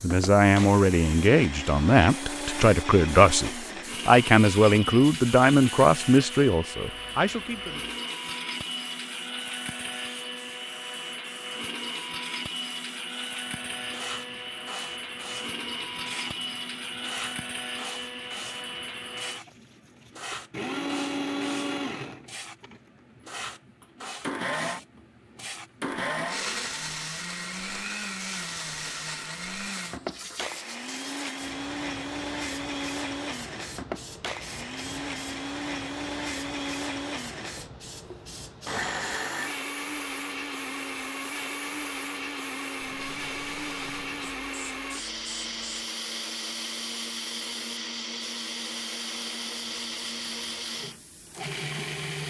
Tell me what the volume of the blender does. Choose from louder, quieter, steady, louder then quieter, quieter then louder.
steady.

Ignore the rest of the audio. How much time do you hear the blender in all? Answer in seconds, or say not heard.
52 s.